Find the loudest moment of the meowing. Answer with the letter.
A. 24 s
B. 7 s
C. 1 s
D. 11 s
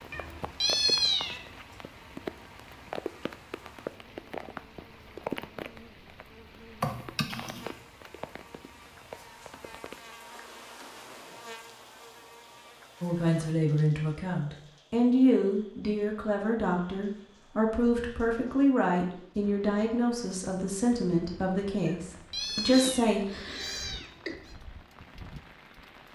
C.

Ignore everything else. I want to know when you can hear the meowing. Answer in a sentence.
The meowing can be heard from 0.1 to 1.4 s and from 21.9 to 24.6 s.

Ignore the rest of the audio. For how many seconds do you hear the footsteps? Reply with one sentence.
The footsteps can't be heard in this clip.